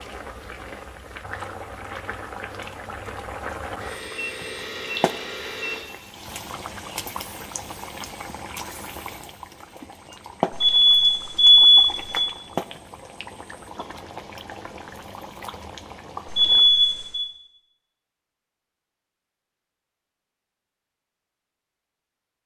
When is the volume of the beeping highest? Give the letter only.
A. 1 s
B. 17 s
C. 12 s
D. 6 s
C.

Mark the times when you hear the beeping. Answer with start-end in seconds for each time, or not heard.
3.8-5.8, 10.5-12.2, 16.2-17.2.